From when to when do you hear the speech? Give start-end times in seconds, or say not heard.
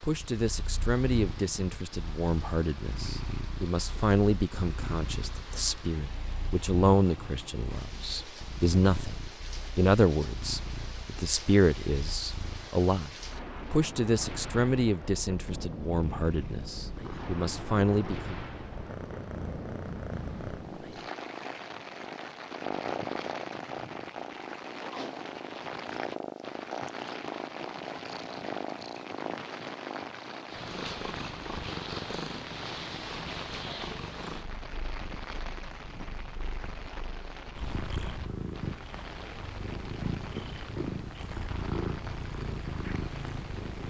0.0-18.4.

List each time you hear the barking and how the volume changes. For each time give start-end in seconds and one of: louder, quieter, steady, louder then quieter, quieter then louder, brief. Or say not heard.
not heard.